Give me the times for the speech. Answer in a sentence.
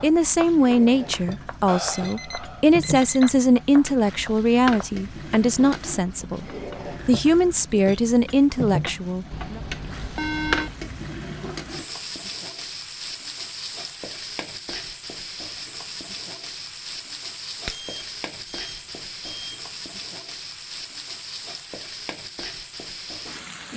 The speech can be heard from 0.0 to 6.4 s and from 7.0 to 9.6 s.